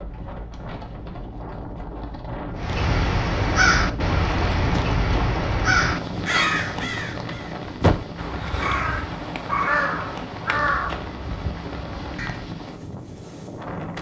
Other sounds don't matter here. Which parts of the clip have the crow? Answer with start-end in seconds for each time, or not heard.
2.5-12.4.